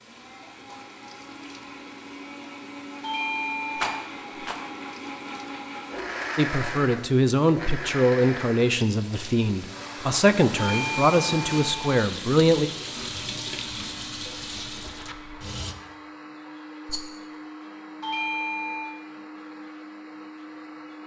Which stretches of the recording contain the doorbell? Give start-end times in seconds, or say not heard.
3.0-4.0, 10.6-12.1, 18.0-19.0.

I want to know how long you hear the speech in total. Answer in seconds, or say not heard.
6 s.